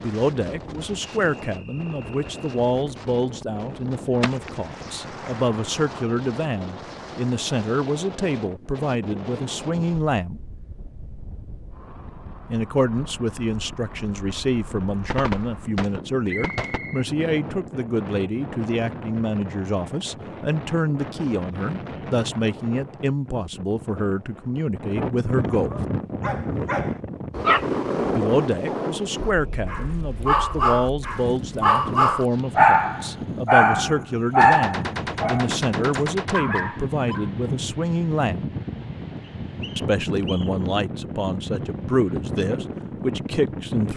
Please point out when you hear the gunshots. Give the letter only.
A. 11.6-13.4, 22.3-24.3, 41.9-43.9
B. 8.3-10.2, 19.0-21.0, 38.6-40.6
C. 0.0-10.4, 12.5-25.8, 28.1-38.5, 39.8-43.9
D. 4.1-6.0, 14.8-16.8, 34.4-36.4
D.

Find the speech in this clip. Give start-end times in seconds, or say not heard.
0.0-10.4, 12.5-25.8, 28.1-38.5, 39.8-43.9.